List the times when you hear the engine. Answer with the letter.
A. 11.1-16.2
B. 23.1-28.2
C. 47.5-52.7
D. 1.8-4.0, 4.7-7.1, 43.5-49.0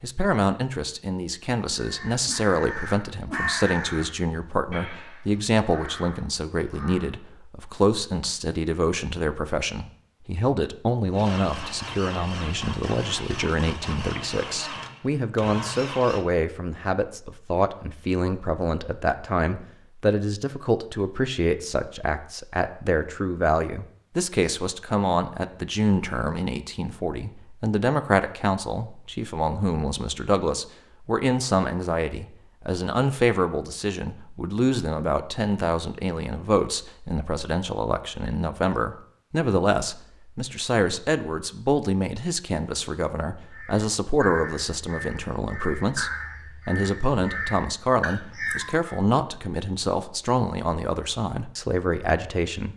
A.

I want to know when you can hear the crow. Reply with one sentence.
The crow can be heard from 1.8 to 4.0 s, from 4.7 to 7.1 s and from 43.5 to 49.0 s.